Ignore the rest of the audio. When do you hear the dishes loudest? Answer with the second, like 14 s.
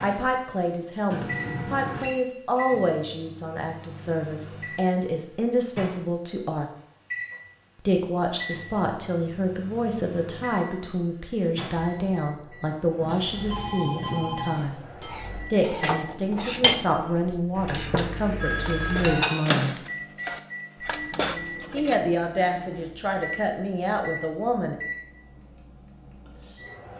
17 s.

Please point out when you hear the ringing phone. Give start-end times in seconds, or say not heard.
1.1-2.2, 13.0-14.7, 18.4-19.1.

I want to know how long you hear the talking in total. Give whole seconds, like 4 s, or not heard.
21 s.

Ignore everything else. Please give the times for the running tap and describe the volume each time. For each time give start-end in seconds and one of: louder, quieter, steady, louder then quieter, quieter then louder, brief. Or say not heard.
not heard.